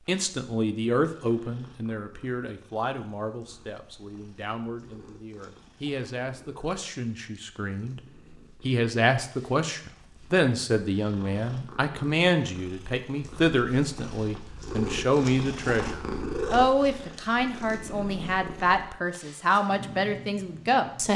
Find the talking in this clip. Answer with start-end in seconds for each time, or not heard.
0.1-21.1.